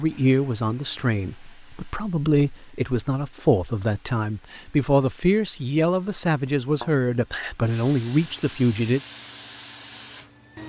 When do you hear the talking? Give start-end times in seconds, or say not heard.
0.0-9.0.